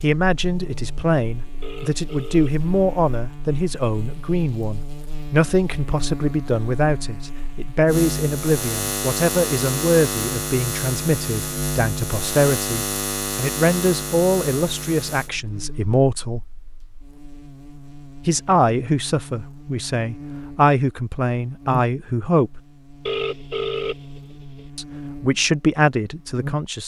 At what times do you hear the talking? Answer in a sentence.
You can hear the talking from 0.0 to 16.4 s, from 18.2 to 22.6 s and from 24.8 to 26.8 s.